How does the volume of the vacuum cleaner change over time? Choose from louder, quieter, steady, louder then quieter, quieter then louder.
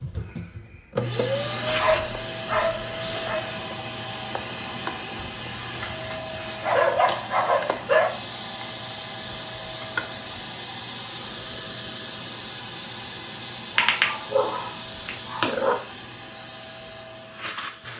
quieter.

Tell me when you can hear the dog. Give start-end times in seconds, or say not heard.
1.7-3.4, 6.6-8.1, 13.8-15.8.